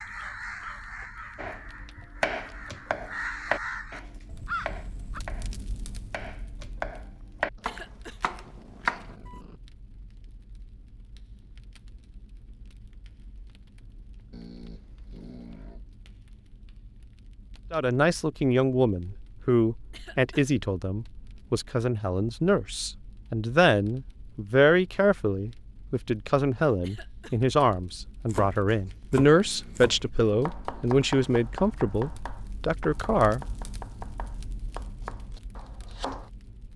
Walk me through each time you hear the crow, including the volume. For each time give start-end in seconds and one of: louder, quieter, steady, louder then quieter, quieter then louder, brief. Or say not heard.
0.0-5.2 quieter then louder.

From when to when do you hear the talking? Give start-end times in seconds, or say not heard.
17.7-33.5.